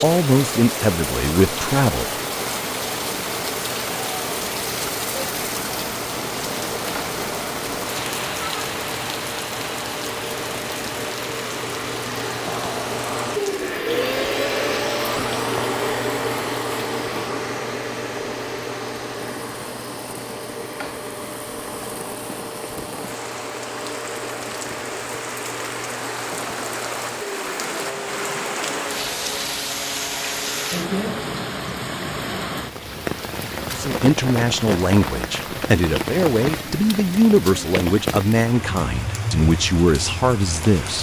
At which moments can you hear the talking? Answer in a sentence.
You can hear the talking from 0.0 to 2.0 s and from 33.7 to 40.9 s.